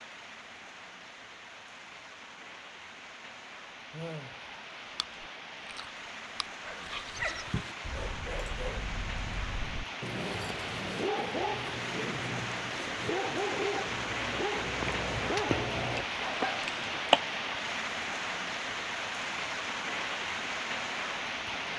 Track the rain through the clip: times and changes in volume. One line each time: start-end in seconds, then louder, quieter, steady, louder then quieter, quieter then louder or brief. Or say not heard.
0.0-21.7 louder.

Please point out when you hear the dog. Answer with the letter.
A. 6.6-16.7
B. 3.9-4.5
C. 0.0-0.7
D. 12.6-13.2
A.